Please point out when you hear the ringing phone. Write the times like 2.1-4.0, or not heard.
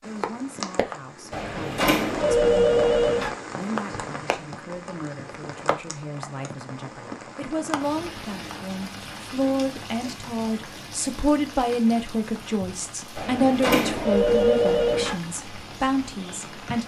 1.3-3.3, 13.2-15.2.